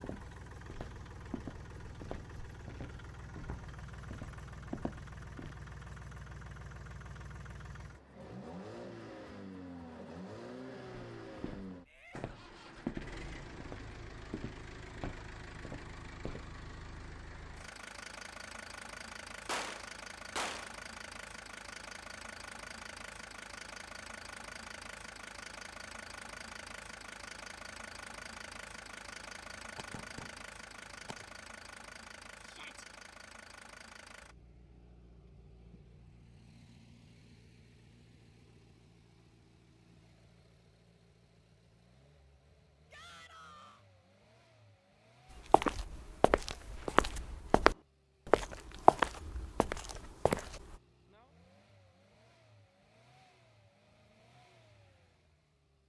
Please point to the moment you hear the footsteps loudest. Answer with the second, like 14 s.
49 s.